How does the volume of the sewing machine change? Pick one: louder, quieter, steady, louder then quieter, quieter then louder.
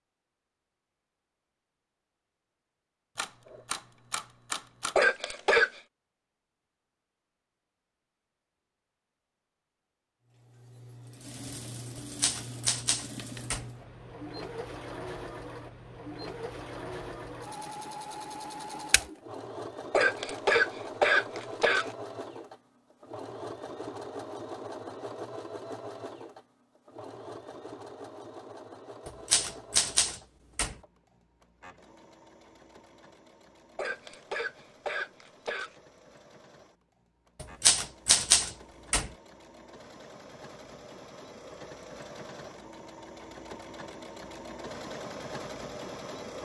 quieter then louder.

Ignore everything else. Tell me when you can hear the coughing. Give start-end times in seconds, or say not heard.
5.0-5.8, 19.9-21.9, 33.8-35.8.